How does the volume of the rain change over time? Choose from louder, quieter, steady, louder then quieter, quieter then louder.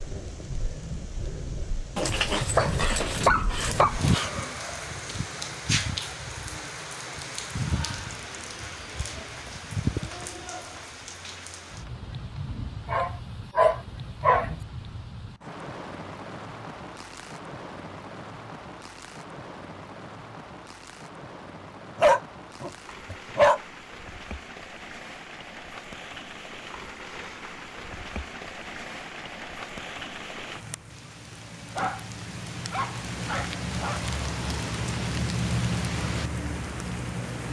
quieter then louder.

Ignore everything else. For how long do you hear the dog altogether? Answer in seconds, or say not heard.
8 s.